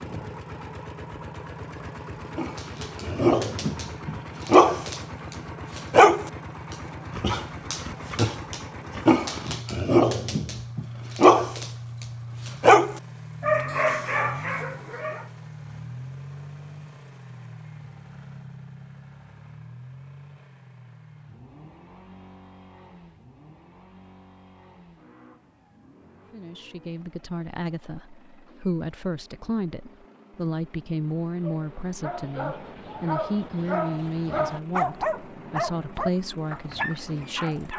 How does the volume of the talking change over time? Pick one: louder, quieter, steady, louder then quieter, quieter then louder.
steady.